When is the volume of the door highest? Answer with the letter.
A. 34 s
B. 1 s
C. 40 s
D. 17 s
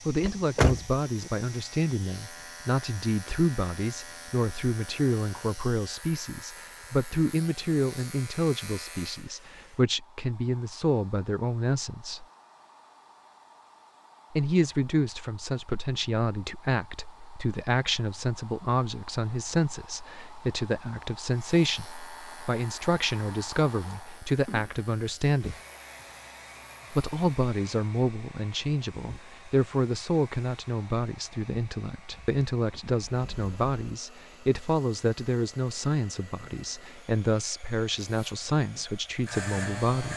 B.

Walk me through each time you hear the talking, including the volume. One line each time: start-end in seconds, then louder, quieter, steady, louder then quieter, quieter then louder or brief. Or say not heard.
0.1-12.2 steady
14.3-25.6 steady
26.9-40.1 steady.